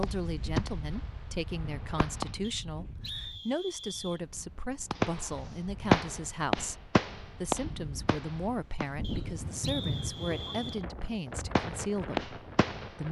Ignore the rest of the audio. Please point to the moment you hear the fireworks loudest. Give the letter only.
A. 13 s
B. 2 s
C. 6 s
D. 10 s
C.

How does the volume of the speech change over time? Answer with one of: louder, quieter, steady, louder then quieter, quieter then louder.
steady.